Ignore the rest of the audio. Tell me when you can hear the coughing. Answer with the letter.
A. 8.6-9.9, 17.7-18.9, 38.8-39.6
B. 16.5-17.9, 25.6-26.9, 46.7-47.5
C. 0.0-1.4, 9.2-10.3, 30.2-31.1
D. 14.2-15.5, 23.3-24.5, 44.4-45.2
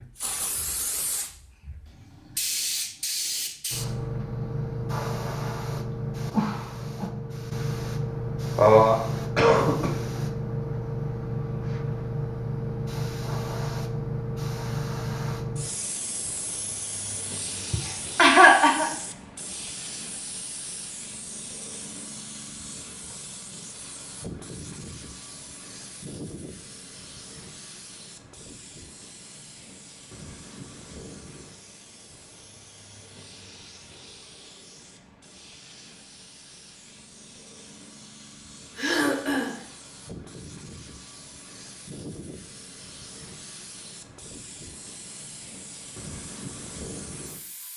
A.